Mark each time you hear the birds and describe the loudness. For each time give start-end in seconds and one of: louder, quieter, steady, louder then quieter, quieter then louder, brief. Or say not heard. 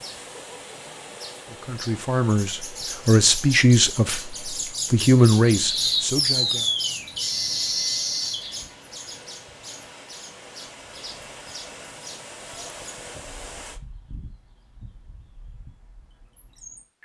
0.0-17.0 louder then quieter.